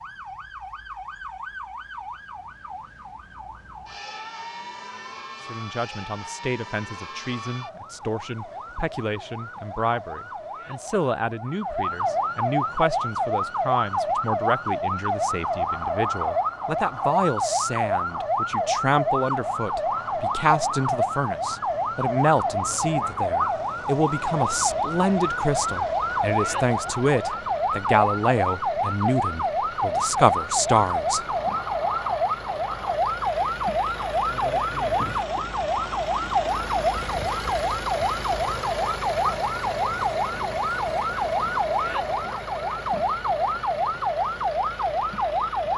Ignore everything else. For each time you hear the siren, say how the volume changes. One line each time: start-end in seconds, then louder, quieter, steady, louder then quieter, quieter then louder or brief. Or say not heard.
0.0-45.7 louder.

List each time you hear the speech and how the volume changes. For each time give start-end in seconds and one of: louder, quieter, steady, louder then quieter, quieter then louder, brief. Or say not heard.
5.4-31.2 louder.